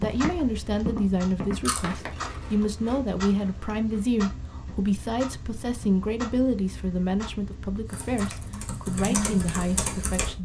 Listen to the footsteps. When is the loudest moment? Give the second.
1 s.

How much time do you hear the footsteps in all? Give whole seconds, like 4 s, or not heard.
3 s.